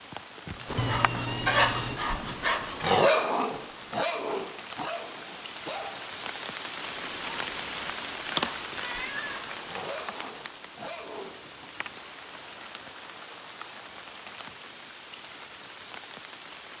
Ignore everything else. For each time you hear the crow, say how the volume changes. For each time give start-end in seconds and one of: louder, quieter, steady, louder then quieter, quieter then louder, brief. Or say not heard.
not heard.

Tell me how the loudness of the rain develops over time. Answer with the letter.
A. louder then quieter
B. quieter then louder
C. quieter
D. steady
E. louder
A.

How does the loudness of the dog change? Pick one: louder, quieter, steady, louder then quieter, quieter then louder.
quieter.